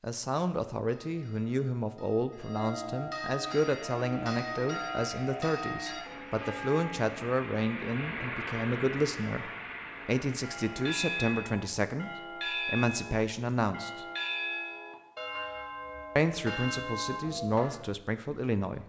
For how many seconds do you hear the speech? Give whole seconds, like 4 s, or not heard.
17 s.